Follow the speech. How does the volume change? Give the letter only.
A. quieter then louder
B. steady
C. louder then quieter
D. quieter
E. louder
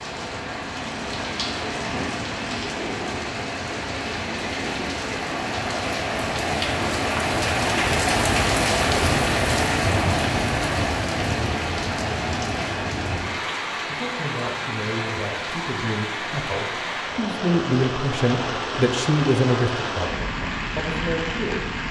C.